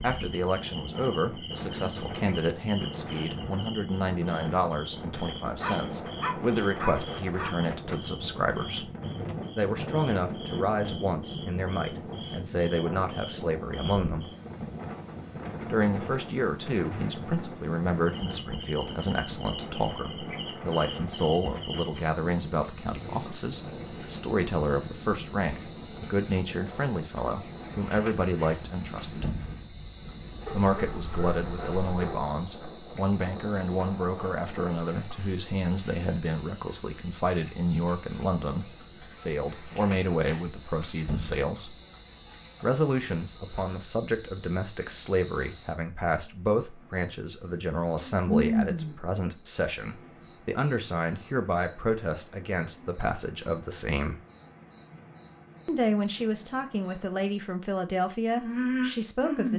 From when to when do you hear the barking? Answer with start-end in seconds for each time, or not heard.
5.2-7.5, 30.4-32.3.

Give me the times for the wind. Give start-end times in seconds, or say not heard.
0.0-34.8.